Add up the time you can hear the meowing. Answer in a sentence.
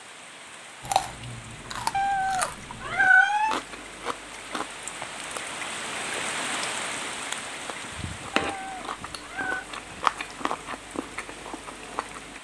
You can hear the meowing for 3 seconds altogether.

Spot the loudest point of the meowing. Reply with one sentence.
The volume of the meowing peaks at 3 seconds.